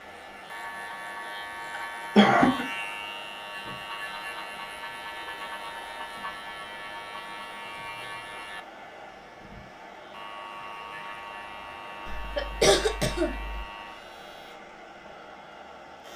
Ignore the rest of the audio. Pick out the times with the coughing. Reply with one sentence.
You can hear the coughing from 2.1 to 2.6 s and from 12.1 to 13.7 s.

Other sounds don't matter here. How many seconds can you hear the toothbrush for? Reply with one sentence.
The toothbrush can't be heard in this clip.